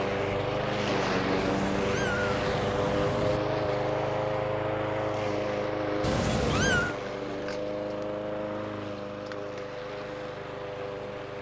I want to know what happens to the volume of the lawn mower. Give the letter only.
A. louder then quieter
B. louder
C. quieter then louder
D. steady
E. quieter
E.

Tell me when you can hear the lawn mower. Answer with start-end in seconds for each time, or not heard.
0.0-11.3.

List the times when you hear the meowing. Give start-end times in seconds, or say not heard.
1.4-3.4, 6.0-7.0.